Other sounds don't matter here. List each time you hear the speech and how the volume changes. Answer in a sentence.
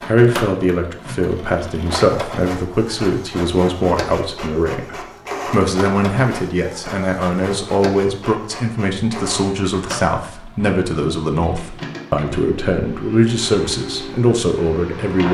You can hear the speech from 0.1 to 15.2 s, at a steady volume.